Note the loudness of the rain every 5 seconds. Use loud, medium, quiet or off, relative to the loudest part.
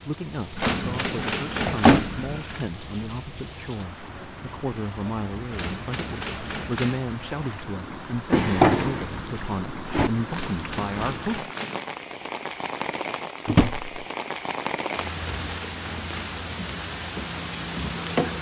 medium, medium, loud, loud.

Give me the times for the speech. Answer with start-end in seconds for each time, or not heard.
0.0-11.5.